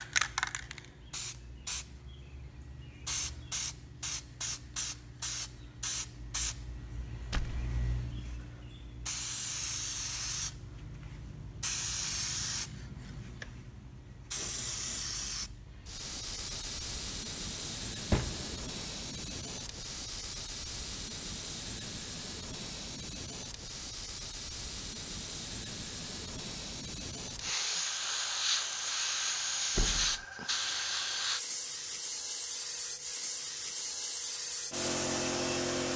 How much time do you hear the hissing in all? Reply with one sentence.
The hissing can be heard for 36 seconds in total.